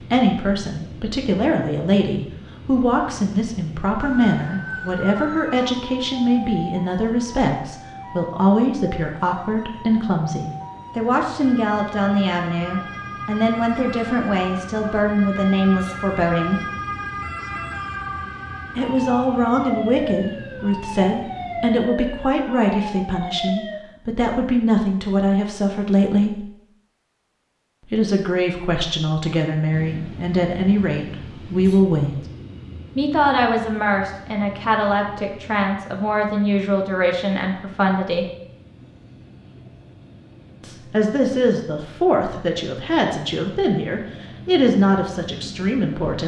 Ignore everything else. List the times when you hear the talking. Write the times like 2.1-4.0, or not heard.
0.0-16.6, 18.8-26.5, 27.9-32.1, 33.0-38.3, 40.6-46.2.